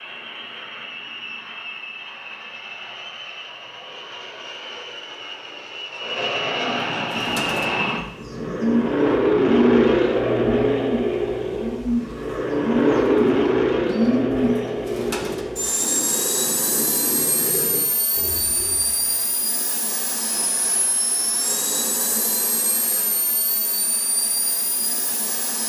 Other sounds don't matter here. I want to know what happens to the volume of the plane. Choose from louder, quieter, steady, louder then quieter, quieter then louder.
louder then quieter.